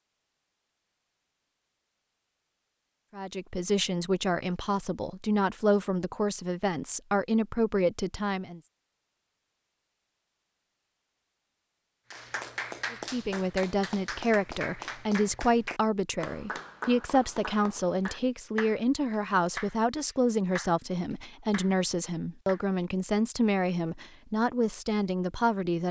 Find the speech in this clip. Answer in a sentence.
You can hear the speech from 3.1 to 8.6 s and from 12.9 to 25.8 s.